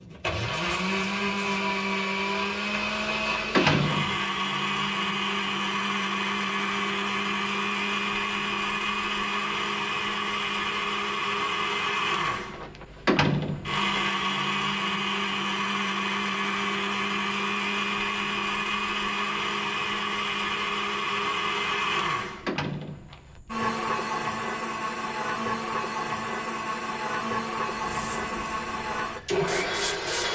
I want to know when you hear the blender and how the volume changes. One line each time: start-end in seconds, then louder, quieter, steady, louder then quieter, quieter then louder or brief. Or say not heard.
0.0-30.2 steady.